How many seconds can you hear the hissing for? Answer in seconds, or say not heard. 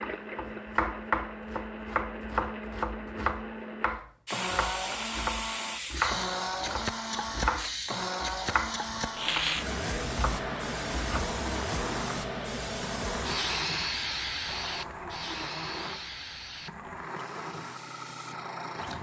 15 s.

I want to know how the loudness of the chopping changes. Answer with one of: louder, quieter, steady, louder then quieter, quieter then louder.
quieter.